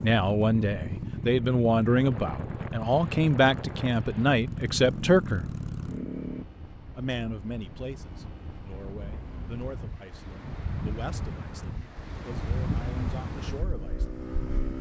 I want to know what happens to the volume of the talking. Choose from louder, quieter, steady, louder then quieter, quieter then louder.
quieter.